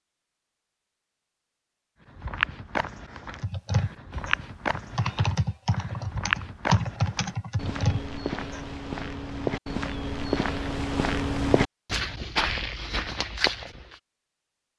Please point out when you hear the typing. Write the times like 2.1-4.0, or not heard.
3.4-9.1.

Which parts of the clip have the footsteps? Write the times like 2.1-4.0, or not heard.
2.0-14.0.